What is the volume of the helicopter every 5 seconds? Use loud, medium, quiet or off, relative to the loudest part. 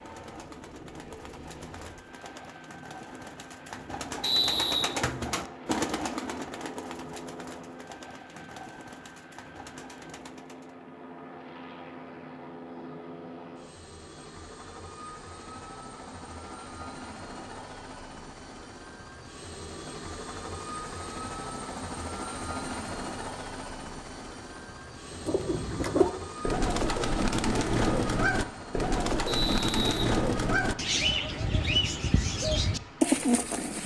medium, medium, medium, medium, loud, loud, medium.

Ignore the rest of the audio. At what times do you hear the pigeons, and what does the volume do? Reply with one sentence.
You can hear the pigeons from 0.0 to 10.8 s, getting louder then quieter; and from 25.1 to 33.8 s, at a steady volume.